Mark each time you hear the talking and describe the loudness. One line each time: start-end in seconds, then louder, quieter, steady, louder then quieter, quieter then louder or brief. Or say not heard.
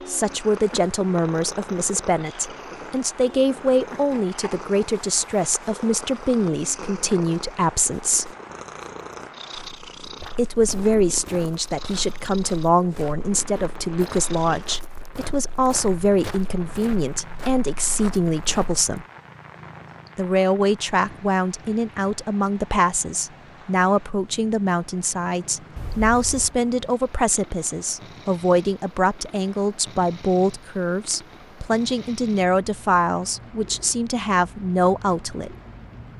0.1-8.3 steady
10.3-19.1 steady
20.1-35.5 steady.